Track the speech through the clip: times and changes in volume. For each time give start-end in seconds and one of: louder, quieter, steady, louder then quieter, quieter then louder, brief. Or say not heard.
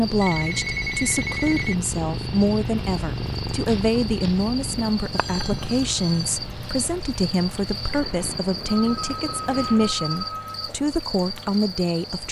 0.0-12.2 steady.